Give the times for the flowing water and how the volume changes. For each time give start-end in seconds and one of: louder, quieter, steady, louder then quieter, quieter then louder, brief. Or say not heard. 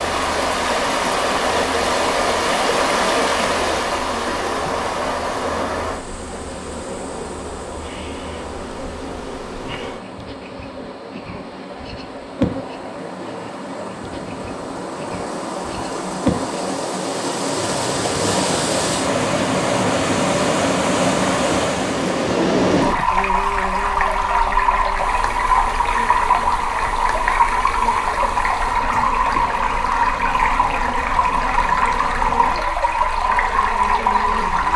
0.0-34.7 quieter then louder.